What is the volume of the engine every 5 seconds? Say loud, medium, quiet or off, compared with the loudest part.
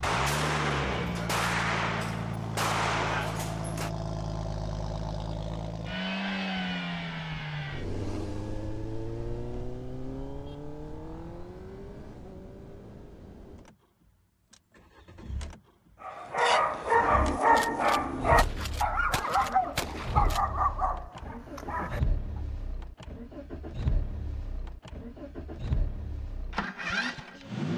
loud, loud, medium, medium, medium, loud.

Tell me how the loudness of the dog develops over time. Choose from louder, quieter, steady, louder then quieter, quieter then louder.
quieter.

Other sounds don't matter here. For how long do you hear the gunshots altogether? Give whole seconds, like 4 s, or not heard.
7 s.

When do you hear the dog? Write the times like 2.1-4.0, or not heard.
16.0-22.4.